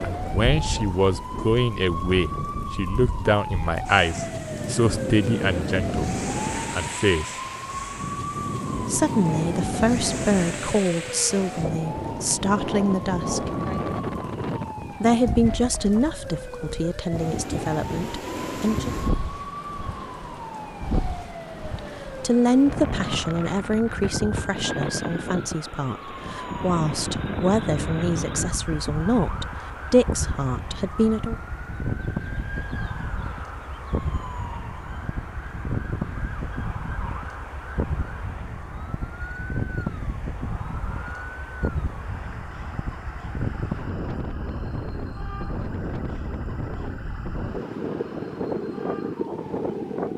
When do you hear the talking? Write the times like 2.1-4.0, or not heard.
0.1-6.0, 6.7-7.3, 8.8-13.5, 15.0-18.9, 21.8-31.4.